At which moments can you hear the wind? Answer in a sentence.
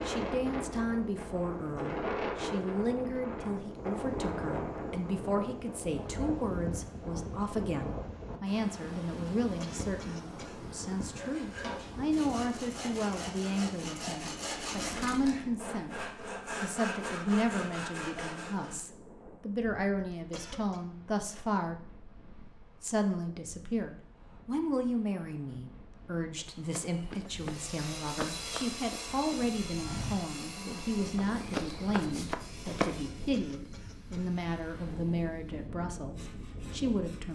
The wind can be heard from 0.0 to 37.3 s.